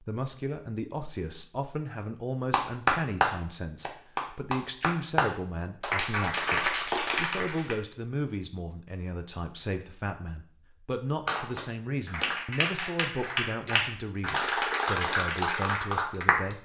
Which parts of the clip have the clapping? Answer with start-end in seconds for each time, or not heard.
2.5-7.8, 11.2-16.5.